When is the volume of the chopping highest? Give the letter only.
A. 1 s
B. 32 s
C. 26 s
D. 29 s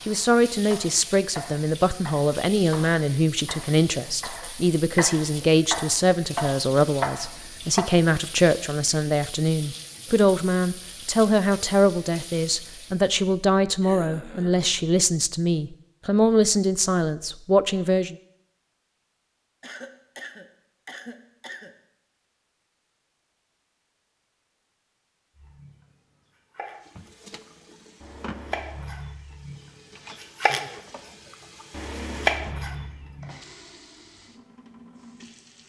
B.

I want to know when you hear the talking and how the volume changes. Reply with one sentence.
You can hear the talking from 0.1 to 18.1 s, at a steady volume.